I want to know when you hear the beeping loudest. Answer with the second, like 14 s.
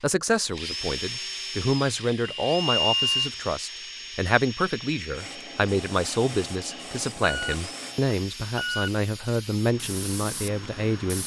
3 s.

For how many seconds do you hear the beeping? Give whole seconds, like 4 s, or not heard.
3 s.